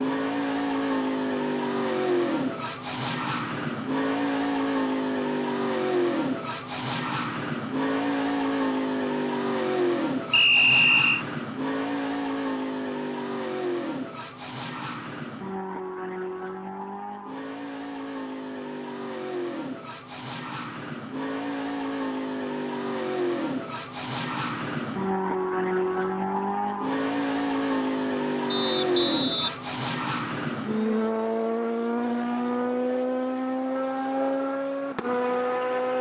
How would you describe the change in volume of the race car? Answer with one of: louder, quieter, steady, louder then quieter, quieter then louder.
quieter then louder.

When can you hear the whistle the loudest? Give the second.
11 s.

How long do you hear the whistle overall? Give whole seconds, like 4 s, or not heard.
2 s.